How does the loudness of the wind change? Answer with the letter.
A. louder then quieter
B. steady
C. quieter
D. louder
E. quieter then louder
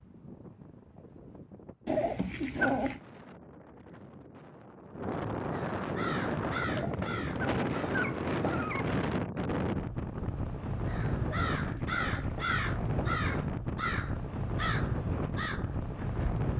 D.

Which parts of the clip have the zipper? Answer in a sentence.
The zipper can't be heard in this clip.